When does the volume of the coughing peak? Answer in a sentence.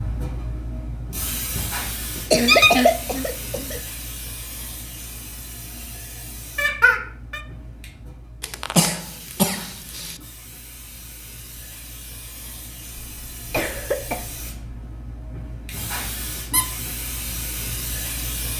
The loudest moment of the coughing is at 3 seconds.